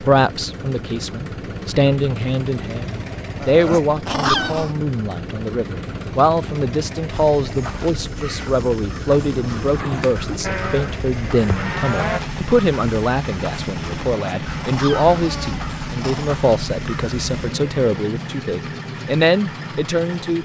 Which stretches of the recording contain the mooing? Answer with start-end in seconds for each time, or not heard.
10.4-12.2.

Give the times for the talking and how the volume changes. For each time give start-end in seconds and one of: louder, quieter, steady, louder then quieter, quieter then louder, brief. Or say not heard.
0.0-20.3 steady.